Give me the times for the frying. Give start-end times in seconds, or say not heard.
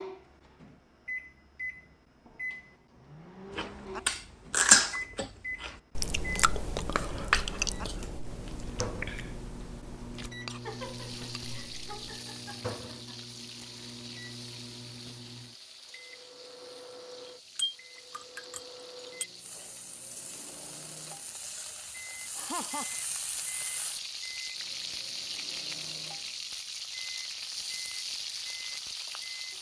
10.6-29.5.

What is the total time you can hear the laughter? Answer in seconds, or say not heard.
3 s.